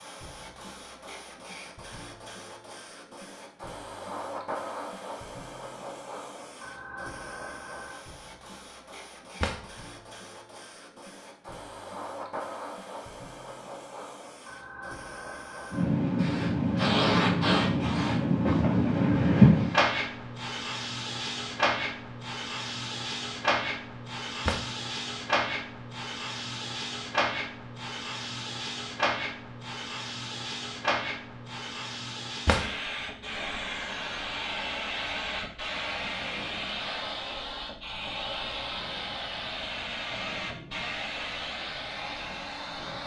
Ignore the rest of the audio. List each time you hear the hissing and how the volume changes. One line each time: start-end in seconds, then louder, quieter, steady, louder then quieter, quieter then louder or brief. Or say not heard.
0.0-43.0 louder then quieter.